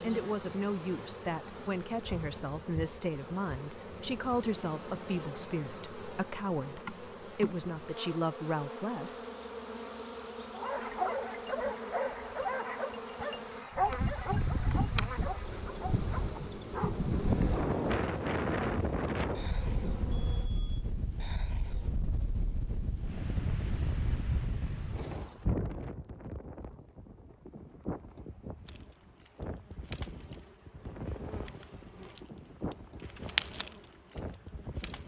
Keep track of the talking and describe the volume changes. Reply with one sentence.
The volume of the talking stays about the same.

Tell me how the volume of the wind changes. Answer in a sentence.
The loudness of the wind goes down.